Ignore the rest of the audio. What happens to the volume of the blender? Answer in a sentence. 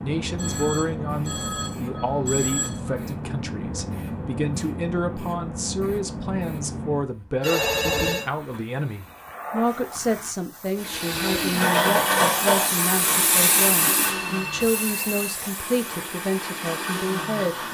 The loudness of the blender goes down, then up.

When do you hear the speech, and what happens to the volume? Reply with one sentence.
You can hear the speech from 0.0 to 17.6 s, at a steady volume.